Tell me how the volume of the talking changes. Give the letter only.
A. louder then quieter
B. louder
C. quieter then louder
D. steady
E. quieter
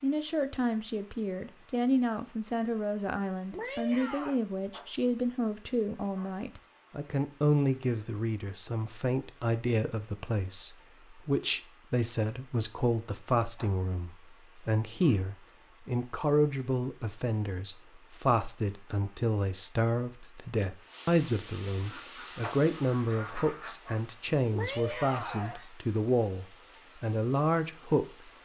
D.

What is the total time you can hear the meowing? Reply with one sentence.
You can hear the meowing for 2 seconds altogether.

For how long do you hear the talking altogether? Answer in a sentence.
The talking can be heard for 28 seconds in total.